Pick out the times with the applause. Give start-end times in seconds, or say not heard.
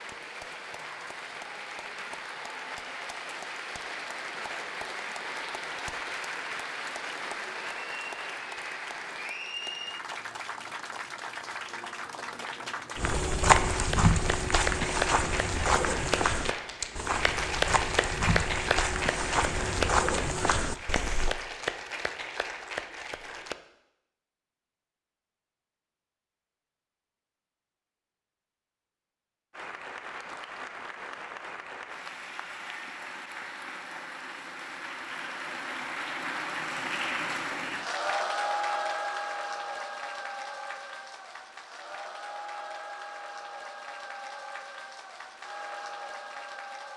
0.0-23.6, 29.5-46.9.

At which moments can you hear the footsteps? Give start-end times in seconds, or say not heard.
12.9-21.4.